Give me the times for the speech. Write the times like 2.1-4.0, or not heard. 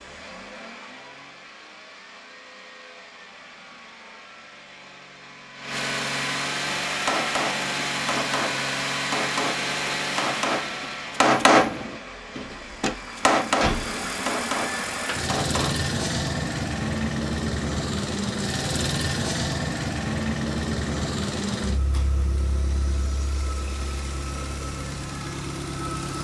not heard.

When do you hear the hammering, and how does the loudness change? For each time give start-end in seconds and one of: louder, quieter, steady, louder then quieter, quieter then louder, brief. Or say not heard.
6.7-15.9 louder then quieter.